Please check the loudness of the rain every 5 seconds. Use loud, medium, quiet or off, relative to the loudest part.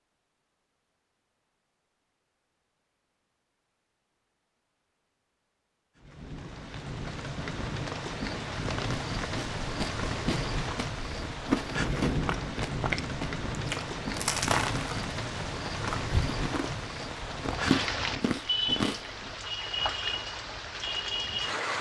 off, loud, loud, loud, loud.